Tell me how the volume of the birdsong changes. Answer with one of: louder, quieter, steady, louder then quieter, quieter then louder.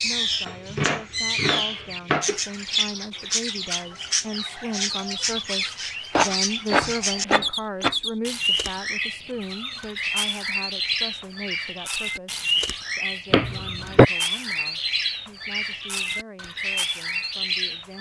steady.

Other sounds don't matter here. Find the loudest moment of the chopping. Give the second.
14 s.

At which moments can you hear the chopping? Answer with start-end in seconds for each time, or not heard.
0.5-2.4, 6.1-8.0, 13.3-14.1.